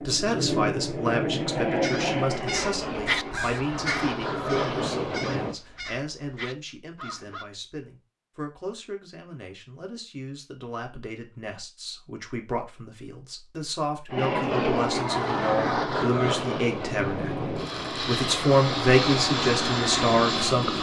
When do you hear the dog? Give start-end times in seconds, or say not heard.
not heard.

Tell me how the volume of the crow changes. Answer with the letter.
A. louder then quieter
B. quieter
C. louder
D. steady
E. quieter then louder
A.